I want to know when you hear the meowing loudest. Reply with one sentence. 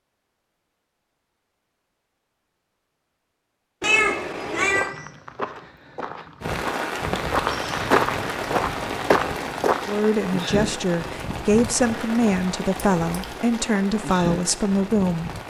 The loudest moment of the meowing is at 4 seconds.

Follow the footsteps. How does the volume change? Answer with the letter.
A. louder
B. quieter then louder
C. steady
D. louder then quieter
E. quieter
A.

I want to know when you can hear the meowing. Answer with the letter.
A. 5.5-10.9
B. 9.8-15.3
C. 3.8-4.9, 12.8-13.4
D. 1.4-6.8
C.